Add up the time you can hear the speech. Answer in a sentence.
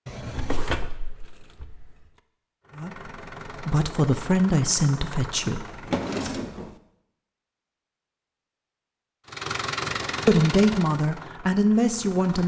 The speech can be heard for 5 seconds in total.